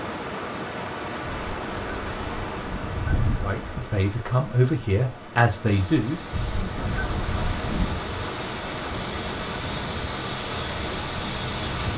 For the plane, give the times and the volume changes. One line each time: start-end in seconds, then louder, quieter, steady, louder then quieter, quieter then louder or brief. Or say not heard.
5.7-11.9 louder.